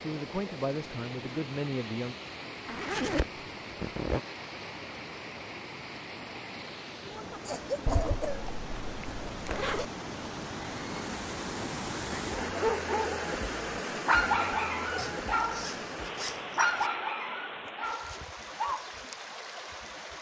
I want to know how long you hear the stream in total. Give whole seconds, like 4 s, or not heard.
20 s.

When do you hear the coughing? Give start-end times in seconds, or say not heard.
7.5-8.4.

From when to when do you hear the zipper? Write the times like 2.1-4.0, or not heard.
2.6-4.2, 7.8-9.8, 14.9-16.9.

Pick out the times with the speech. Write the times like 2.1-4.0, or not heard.
0.0-2.1.